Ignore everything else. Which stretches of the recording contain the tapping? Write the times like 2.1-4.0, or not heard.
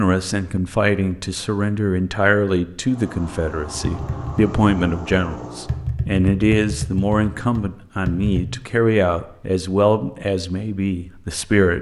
3.8-8.4.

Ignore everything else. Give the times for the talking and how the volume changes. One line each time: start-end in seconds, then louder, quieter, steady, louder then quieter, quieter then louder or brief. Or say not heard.
0.0-11.7 steady.